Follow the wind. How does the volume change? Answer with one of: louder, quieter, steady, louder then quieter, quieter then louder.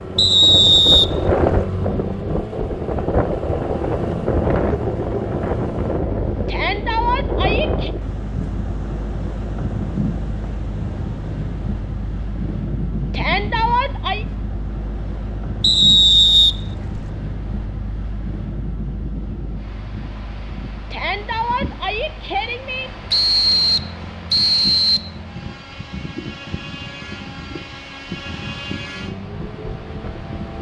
quieter.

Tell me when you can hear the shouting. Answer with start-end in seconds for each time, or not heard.
6.5-7.9, 13.1-14.2, 20.9-22.9.